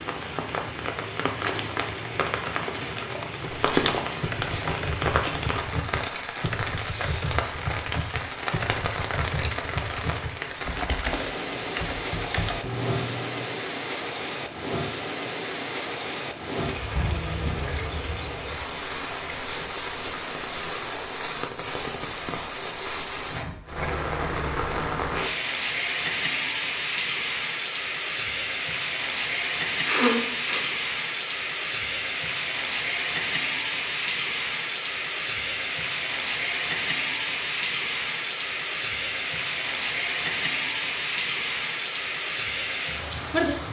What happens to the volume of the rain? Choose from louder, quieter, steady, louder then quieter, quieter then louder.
steady.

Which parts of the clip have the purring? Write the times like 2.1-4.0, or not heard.
not heard.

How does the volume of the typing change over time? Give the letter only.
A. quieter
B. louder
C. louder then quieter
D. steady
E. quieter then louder
D.